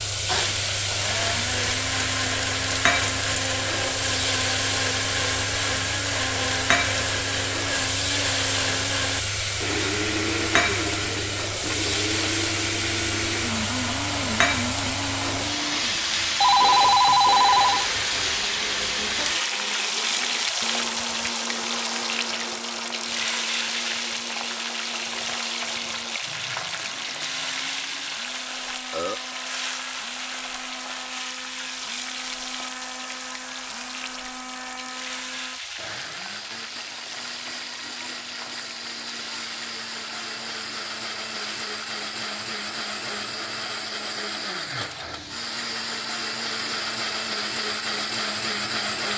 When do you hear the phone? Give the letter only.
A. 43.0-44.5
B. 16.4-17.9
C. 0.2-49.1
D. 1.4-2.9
B.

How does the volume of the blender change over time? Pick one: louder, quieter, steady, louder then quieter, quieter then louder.
quieter then louder.